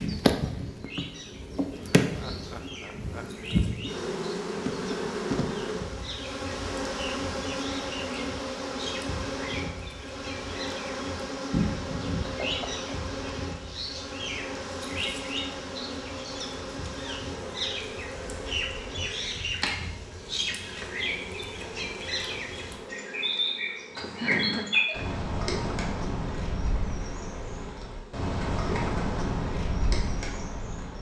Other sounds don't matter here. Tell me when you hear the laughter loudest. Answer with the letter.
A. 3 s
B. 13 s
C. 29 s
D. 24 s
D.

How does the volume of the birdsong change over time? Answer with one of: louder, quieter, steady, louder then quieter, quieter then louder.
louder.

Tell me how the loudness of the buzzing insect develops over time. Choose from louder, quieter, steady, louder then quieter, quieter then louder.
quieter.